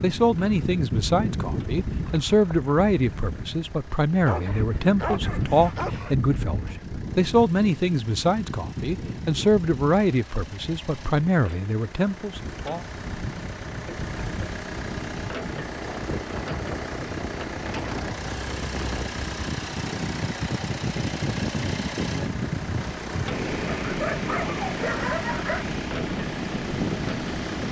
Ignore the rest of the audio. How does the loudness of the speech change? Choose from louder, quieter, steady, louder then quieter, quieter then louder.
steady.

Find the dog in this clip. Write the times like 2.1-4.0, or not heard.
4.2-6.2, 23.8-25.7.